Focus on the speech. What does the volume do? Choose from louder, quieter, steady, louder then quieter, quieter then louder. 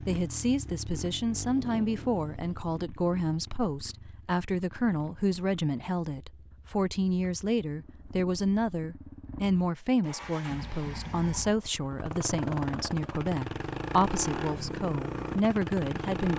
steady.